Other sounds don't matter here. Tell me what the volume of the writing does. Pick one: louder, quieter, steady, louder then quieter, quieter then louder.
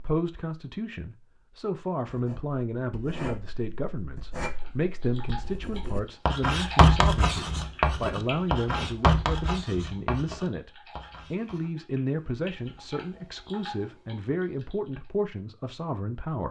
louder then quieter.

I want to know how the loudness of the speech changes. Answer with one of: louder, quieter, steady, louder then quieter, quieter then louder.
steady.